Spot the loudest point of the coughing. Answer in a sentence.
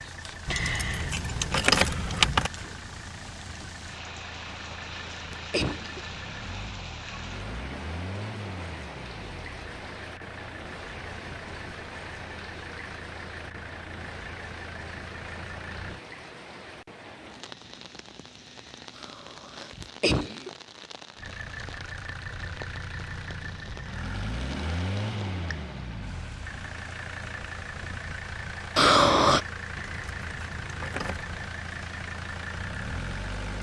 The loudest moment of the coughing is at 29 seconds.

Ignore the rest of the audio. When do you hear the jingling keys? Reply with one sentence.
The jingling keys can be heard from 0.5 to 2.5 s and from 29.8 to 31.6 s.